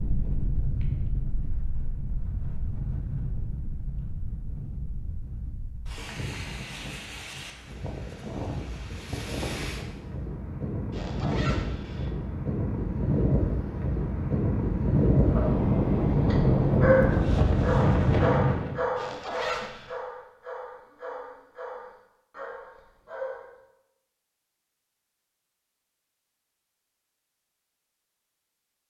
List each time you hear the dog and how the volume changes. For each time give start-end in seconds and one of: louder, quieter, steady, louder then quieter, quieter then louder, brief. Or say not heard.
16.2-23.6 quieter.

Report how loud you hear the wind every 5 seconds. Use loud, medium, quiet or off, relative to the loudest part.
quiet, quiet, medium, loud, off, off.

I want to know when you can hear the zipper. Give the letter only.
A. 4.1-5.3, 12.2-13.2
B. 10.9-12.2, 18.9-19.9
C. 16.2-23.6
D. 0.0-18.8
B.